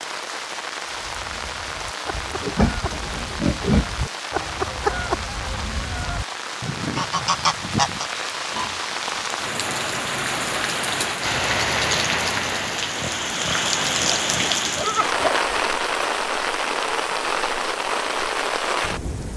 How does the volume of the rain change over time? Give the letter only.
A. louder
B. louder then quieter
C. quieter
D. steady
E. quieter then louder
A.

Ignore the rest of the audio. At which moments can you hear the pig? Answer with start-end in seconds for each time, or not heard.
2.1-4.1, 8.3-9.4, 12.9-15.3.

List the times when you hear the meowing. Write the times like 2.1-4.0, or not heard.
not heard.